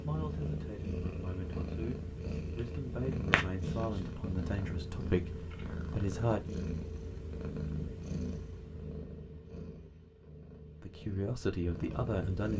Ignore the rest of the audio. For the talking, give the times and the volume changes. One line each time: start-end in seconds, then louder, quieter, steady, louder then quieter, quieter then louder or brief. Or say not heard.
0.0-6.5 louder
10.8-12.5 brief.